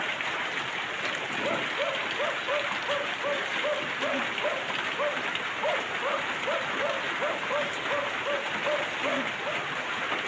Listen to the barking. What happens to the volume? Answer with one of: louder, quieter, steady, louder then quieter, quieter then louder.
steady.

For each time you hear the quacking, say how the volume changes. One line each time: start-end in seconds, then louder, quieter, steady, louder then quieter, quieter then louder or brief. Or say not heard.
not heard.